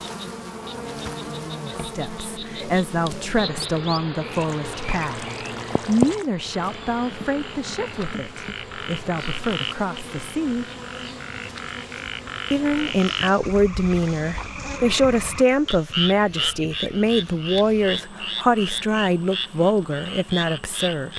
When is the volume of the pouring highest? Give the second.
6 s.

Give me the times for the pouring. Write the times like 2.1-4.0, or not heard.
3.6-6.2.